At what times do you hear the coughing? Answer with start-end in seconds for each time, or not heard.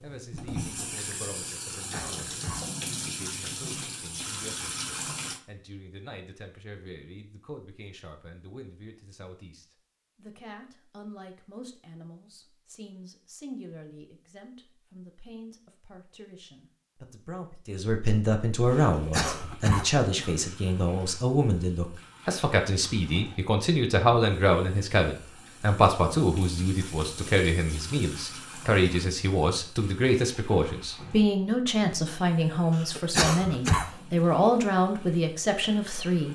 1.7-2.6, 18.9-20.4, 32.8-33.9.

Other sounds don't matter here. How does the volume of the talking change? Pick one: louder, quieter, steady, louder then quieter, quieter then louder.
louder.